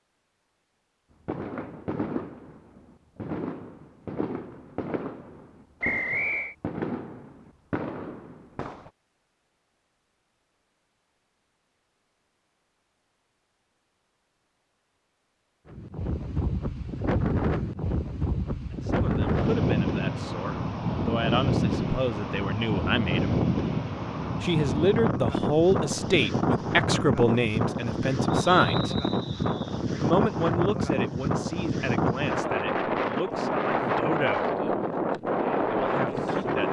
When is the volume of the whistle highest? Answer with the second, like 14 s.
6 s.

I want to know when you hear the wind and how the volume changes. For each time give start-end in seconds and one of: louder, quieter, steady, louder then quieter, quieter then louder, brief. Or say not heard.
15.7-36.6 steady.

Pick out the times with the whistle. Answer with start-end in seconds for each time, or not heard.
5.8-6.5, 28.5-29.8.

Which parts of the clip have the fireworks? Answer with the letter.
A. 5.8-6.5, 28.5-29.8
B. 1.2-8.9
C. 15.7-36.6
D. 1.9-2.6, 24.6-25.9
B.